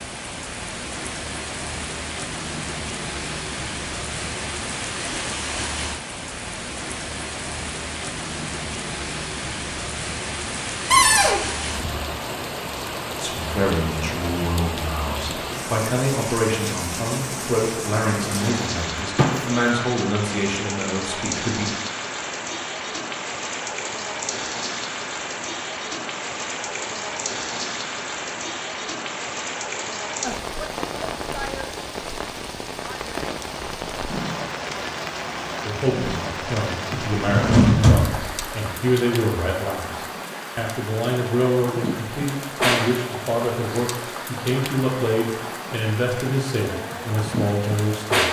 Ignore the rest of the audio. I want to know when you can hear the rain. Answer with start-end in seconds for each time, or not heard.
0.0-48.2.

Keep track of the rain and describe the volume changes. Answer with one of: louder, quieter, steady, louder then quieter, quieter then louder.
steady.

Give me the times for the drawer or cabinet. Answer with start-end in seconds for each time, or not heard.
10.9-11.4, 18.2-19.4, 36.9-38.5.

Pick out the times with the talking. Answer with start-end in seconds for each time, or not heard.
13.2-21.8, 35.6-48.2.